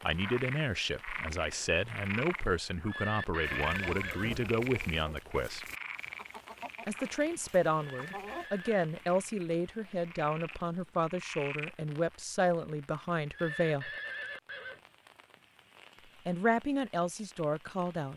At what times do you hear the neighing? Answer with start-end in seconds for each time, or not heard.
2.9-4.3, 7.8-8.8, 13.3-14.8.